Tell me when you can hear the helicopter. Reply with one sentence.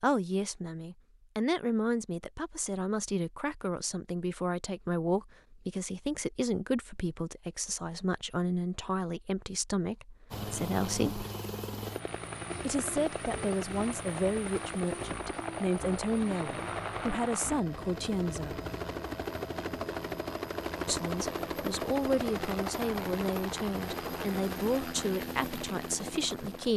The helicopter can be heard from 10.3 to 26.7 s.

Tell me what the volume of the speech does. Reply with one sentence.
The volume of the speech stays about the same.